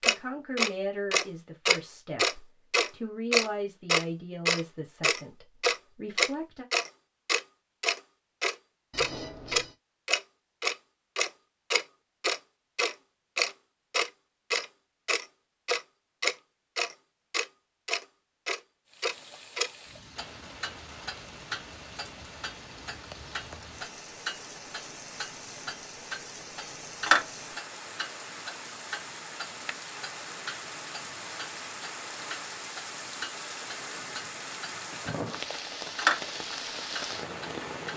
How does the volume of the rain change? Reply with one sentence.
The volume of the rain goes up.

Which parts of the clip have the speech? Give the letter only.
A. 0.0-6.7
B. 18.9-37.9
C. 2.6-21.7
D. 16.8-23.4
A.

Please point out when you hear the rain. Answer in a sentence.
The rain can be heard from 18.9 to 37.9 s.